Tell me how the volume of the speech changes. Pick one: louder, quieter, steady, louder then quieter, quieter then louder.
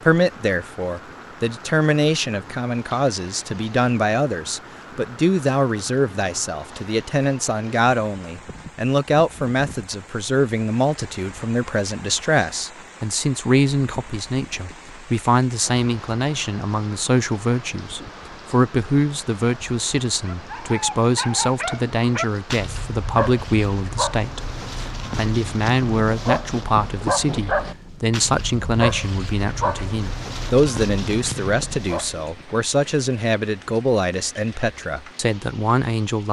steady.